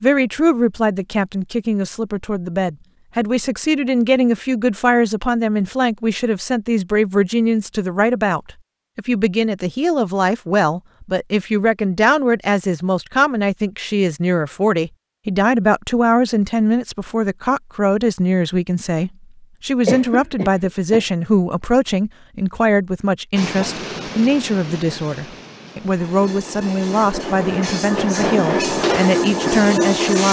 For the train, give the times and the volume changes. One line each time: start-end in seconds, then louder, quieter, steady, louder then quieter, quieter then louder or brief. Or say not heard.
23.4-30.2 quieter then louder.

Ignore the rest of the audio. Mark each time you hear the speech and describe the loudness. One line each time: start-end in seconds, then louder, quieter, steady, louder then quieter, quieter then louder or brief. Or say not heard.
0.0-30.2 steady.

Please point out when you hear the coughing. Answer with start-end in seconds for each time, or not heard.
19.9-21.1.